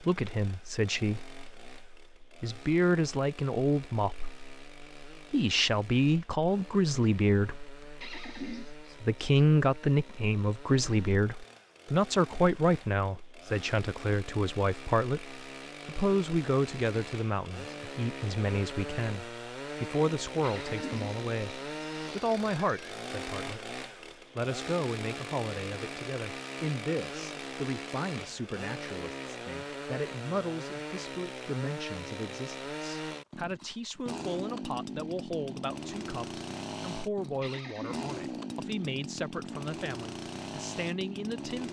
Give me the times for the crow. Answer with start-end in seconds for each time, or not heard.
not heard.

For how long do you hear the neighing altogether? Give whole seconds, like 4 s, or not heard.
4 s.